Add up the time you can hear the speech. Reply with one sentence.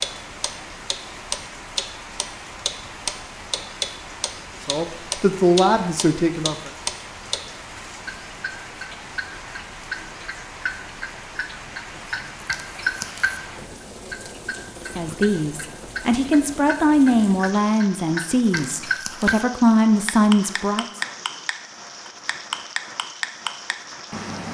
You can hear the speech for 8 seconds altogether.